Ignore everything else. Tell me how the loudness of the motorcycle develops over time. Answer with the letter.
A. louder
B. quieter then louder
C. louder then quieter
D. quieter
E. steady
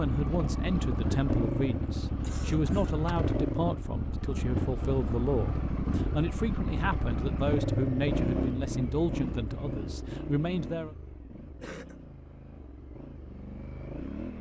D.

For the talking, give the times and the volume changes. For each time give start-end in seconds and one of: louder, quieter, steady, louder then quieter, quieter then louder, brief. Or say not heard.
0.0-10.9 steady.